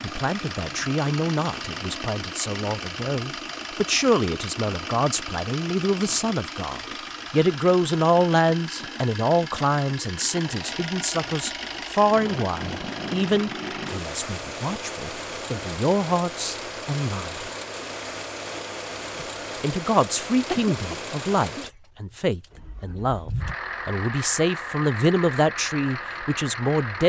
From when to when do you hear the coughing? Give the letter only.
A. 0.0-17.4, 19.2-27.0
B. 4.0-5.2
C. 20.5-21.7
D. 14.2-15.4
C.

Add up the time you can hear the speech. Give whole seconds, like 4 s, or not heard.
25 s.